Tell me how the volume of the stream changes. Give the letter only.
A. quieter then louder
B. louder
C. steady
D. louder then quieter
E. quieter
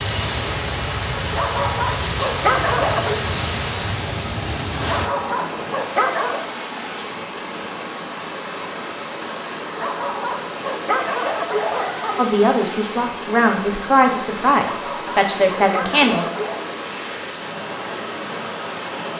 C.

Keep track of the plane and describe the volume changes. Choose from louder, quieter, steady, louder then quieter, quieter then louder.
steady.